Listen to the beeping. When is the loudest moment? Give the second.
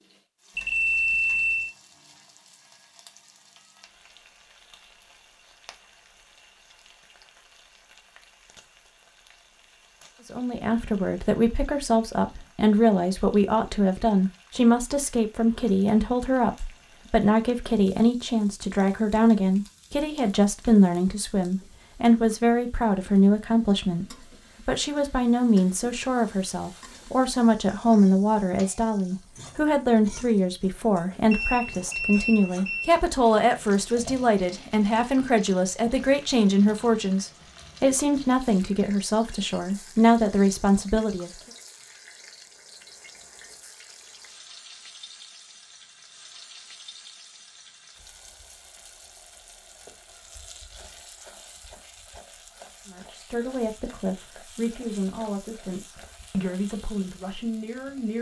1 s.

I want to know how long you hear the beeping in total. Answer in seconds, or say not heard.
3 s.